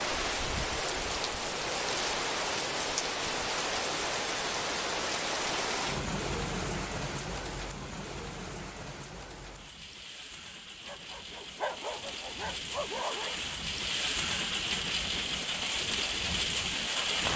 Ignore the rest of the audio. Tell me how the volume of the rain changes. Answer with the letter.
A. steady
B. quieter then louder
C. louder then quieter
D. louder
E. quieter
B.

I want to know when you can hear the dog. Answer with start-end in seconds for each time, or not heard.
10.8-13.3.